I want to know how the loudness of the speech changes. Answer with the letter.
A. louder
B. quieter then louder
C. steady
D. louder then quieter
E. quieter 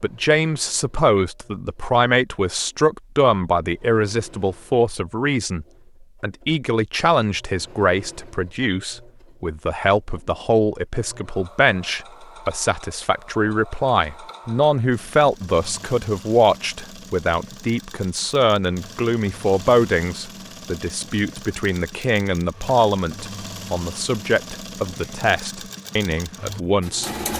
C.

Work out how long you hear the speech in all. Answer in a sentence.
You can hear the speech for 27 seconds altogether.